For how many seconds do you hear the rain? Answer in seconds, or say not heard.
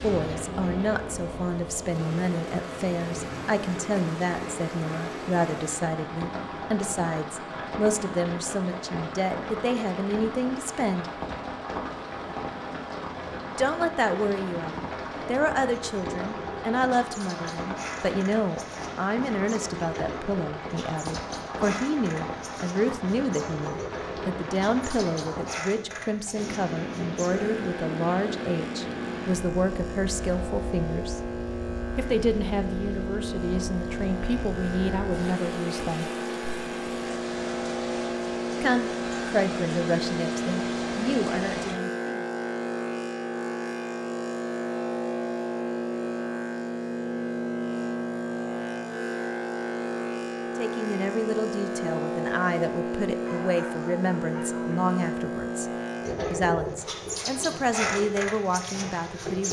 42 s.